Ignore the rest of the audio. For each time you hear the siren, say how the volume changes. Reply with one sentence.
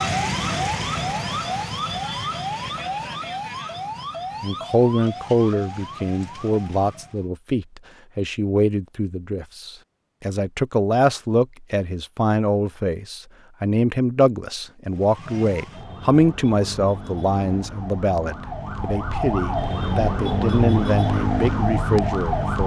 You can hear the siren from 0.0 to 7.3 s, getting quieter; and from 14.9 to 22.6 s, getting louder.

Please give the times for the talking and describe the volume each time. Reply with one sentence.
You can hear the talking from 4.4 to 22.6 s, at a steady volume.